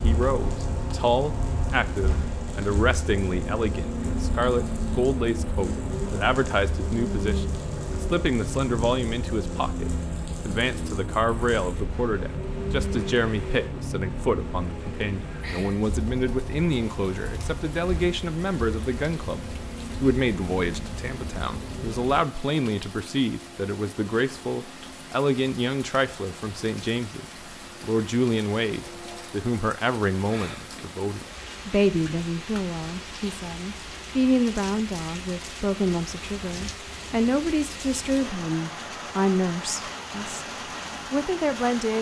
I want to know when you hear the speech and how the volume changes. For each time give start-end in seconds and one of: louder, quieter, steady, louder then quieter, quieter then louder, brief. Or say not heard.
0.0-40.5 steady
41.1-41.9 brief.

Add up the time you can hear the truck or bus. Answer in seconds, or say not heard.
22 s.